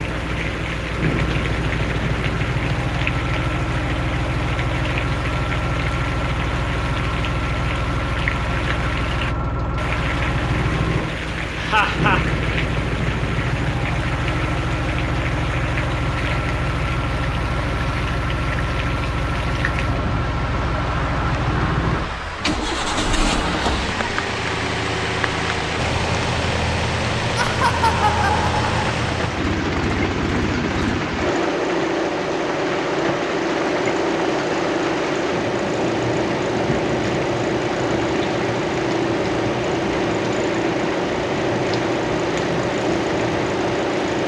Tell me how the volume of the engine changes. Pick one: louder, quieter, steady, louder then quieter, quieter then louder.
steady.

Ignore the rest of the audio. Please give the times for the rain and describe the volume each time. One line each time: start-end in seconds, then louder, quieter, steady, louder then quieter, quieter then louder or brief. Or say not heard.
0.0-44.2 steady.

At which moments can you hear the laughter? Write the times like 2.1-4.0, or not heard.
11.6-12.2, 27.4-28.8.